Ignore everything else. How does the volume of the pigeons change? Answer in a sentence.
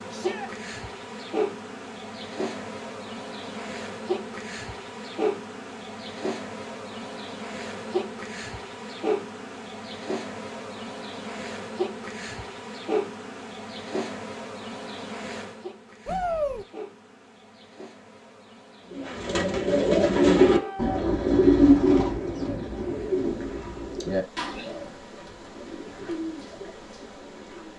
The volume of the pigeons goes down.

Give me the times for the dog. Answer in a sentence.
You can't hear the dog here.